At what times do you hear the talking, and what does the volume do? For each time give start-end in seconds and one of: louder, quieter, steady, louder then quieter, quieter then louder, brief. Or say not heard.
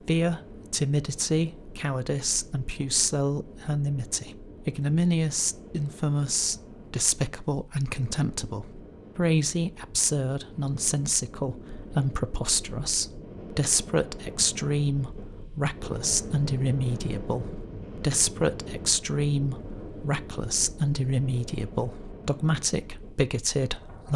0.1-24.1 steady.